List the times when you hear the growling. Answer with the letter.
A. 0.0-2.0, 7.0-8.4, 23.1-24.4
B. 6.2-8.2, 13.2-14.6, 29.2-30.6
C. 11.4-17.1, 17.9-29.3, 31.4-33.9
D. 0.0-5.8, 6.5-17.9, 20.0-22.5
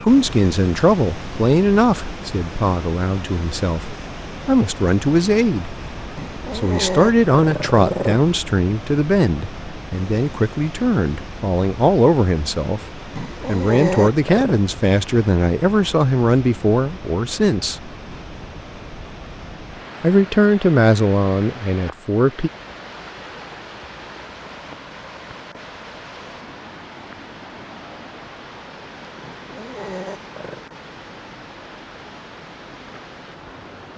B.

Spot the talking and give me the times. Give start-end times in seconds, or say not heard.
0.0-5.8, 6.5-17.9, 20.0-22.5.